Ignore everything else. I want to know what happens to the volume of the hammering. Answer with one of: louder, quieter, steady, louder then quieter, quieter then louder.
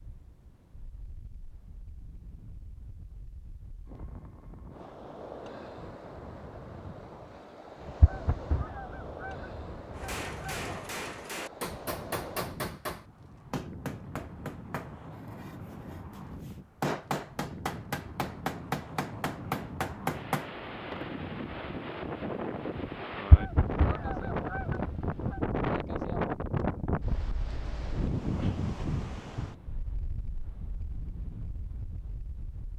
quieter then louder.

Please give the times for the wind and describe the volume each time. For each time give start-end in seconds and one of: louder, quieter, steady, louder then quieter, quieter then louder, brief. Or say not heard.
0.0-32.7 louder.